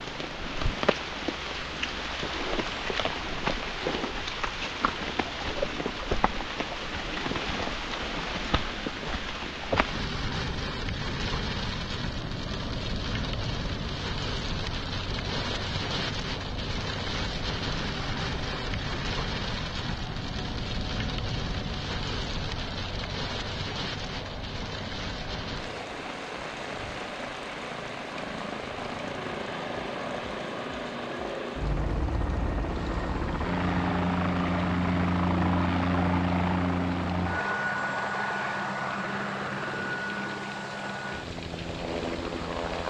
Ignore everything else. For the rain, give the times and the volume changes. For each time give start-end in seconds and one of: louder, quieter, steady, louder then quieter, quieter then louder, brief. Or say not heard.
0.0-42.8 quieter.